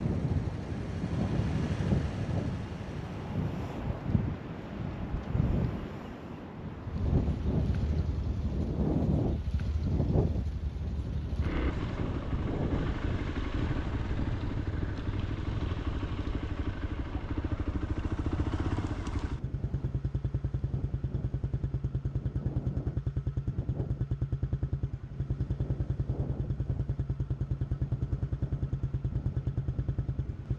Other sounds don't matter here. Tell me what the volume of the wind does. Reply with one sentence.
The loudness of the wind goes down.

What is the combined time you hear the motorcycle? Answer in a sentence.
The motorcycle can be heard for 27 seconds in total.